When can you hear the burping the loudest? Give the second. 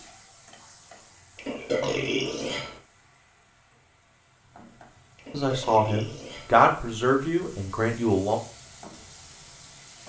2 s.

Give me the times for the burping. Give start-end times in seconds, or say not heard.
1.4-2.8, 5.2-6.5.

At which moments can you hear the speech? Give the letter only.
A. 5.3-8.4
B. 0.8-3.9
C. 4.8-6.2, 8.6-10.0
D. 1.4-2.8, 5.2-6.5
A.